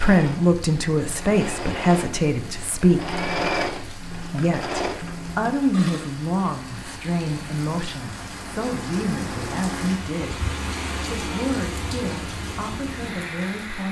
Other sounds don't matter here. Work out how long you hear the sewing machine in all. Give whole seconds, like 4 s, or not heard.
6 s.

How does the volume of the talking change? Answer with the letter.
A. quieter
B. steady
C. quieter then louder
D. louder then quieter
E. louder
A.